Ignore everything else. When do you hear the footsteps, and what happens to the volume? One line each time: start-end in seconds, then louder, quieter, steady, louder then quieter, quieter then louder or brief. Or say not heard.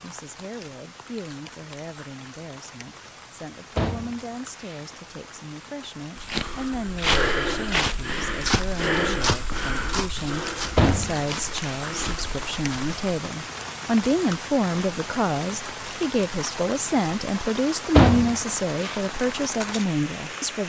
6.2-12.9 quieter.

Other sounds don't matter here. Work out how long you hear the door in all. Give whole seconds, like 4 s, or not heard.
3 s.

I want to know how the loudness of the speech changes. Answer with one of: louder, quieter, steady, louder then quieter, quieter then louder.
louder.